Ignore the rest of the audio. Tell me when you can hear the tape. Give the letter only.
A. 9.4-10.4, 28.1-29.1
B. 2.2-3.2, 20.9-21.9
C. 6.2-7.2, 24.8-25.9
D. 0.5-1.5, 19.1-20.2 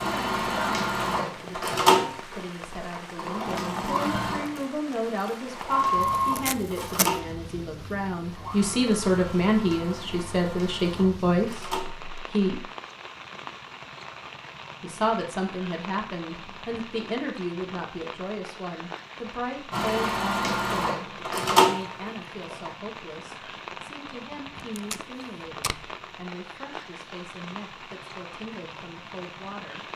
C.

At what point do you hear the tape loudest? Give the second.
7 s.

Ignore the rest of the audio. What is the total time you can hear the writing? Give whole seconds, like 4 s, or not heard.
not heard.